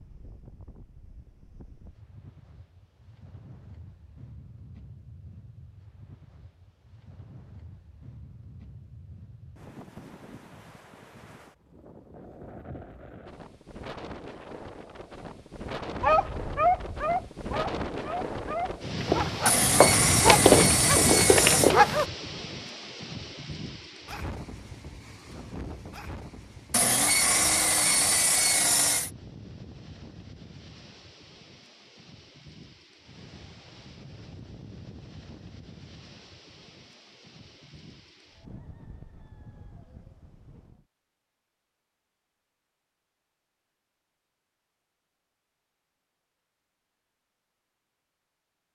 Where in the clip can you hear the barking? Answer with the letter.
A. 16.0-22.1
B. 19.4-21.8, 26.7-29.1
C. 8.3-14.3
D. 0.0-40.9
A.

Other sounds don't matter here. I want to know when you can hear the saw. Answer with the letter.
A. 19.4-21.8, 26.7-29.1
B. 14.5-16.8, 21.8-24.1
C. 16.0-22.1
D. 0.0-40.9
A.